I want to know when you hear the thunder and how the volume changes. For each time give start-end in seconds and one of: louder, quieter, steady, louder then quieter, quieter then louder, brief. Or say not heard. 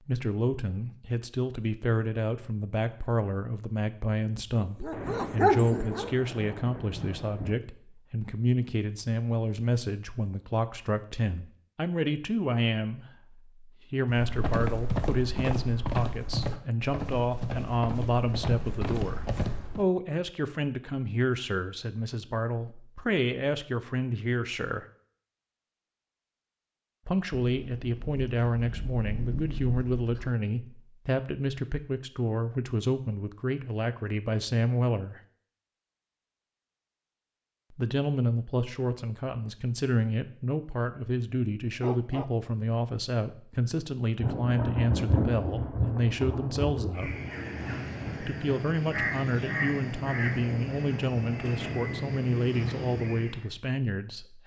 4.9-7.6 brief
27.6-30.4 brief
44.1-48.2 quieter.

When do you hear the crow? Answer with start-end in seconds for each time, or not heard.
47.0-53.5.